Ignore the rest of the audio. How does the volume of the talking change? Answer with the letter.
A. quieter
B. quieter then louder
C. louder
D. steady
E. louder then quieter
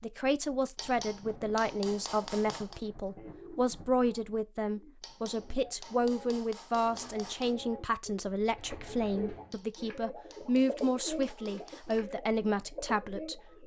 D.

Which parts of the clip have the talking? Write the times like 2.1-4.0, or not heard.
0.0-13.6.